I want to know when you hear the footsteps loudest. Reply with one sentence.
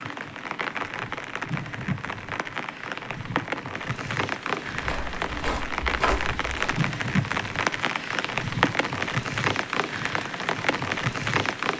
The volume of the footsteps peaks at 6 seconds.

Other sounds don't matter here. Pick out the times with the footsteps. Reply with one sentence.
You can hear the footsteps from 4.7 to 6.8 s.